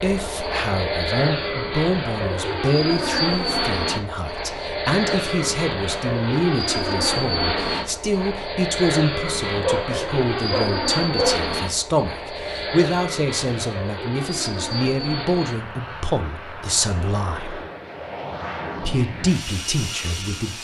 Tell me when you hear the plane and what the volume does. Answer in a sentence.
You can hear the plane from 0.0 to 20.5 s, getting quieter.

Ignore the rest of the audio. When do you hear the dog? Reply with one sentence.
The dog can be heard from 9.6 to 11.4 s.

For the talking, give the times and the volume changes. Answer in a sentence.
You can hear the talking from 0.0 to 17.6 s, at a steady volume; and briefly from 18.8 to 20.5 s.